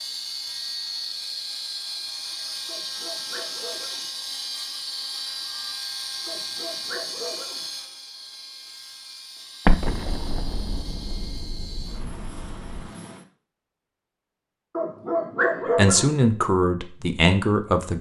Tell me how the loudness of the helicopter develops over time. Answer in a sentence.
The loudness of the helicopter goes down.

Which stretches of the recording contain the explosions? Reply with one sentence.
The explosions can be heard from 9.7 to 12.8 s.